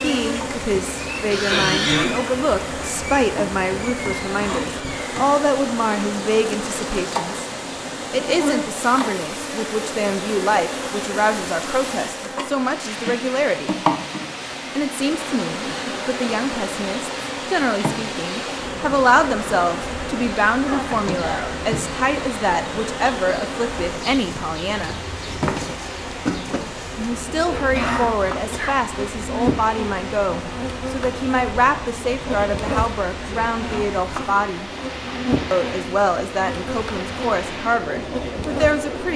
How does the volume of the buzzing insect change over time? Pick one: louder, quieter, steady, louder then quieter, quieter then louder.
steady.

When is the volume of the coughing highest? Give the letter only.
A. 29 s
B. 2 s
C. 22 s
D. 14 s
B.